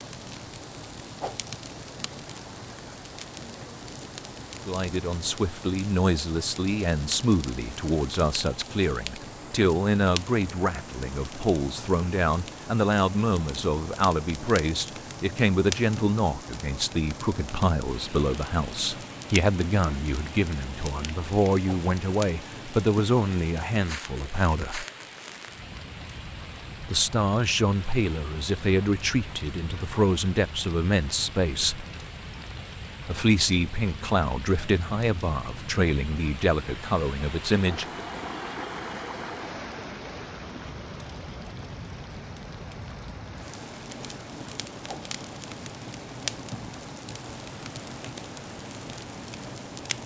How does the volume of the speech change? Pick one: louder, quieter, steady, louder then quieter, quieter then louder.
steady.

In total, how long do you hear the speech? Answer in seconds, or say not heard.
30 s.